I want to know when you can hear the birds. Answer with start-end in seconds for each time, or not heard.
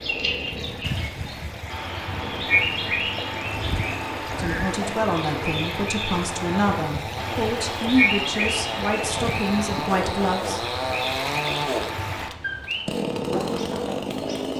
0.0-14.5.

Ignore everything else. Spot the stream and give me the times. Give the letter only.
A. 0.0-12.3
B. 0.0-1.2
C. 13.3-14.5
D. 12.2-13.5
A.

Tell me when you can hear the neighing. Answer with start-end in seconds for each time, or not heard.
3.5-4.8.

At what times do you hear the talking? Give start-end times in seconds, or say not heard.
4.3-10.7.